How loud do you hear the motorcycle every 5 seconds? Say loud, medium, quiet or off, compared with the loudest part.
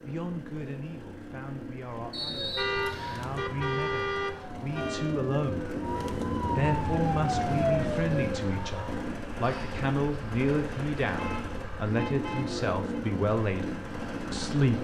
medium, loud, loud.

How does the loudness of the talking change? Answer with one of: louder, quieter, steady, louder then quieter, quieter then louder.
louder.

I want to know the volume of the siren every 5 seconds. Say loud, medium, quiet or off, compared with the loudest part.
medium, loud, off.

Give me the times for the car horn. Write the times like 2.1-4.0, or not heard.
2.5-5.2, 11.2-13.1.